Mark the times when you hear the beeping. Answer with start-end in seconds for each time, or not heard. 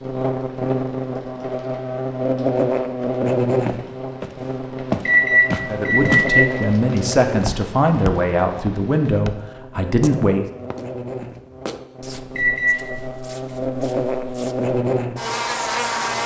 5.0-6.5, 12.3-12.8.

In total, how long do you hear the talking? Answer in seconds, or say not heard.
5 s.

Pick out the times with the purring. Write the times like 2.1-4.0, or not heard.
not heard.